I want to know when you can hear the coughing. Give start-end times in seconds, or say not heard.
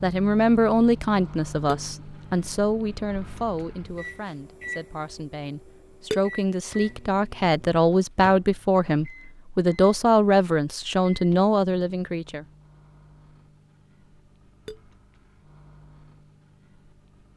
not heard.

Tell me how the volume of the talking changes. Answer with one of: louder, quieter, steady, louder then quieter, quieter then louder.
quieter then louder.